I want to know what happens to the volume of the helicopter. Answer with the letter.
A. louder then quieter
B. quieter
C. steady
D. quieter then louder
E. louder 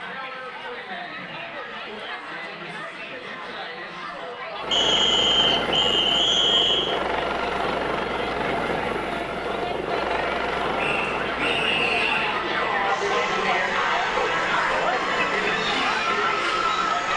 B.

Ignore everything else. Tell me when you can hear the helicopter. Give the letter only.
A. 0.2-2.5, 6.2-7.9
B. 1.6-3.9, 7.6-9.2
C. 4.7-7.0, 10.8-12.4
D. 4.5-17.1
D.